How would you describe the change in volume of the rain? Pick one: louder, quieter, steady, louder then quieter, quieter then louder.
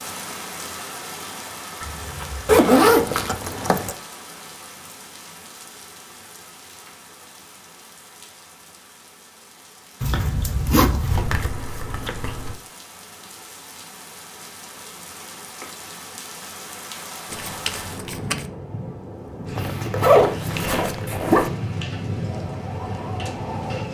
quieter then louder.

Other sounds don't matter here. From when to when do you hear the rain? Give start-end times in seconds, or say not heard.
0.0-23.8.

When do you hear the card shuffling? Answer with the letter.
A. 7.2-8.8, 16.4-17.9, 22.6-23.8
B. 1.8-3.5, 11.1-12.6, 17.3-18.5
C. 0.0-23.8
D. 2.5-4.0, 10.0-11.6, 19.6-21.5
B.